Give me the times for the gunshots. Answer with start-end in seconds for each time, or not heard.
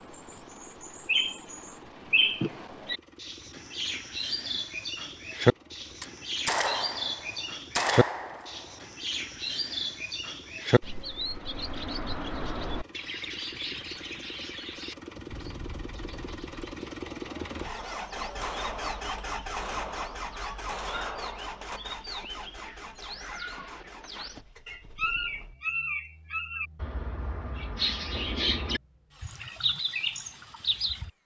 6.0-8.7, 17.8-21.8.